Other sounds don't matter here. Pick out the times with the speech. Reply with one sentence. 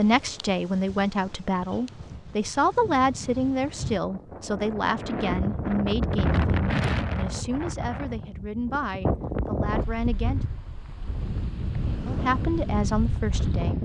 The speech can be heard from 0.0 to 10.4 s and from 12.1 to 13.8 s.